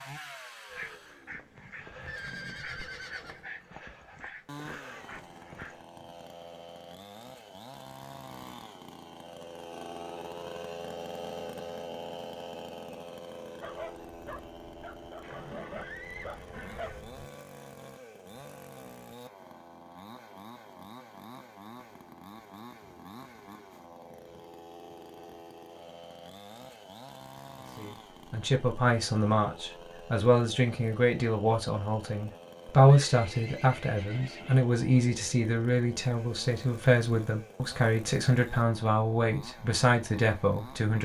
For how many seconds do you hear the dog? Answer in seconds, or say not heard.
9 s.